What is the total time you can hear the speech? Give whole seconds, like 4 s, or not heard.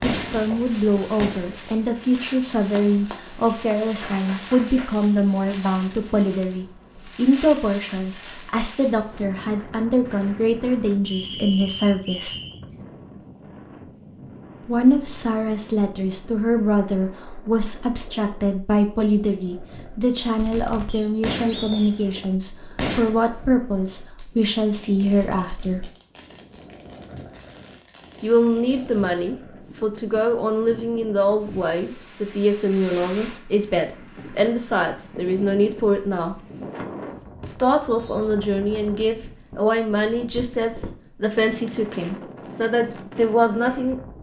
38 s.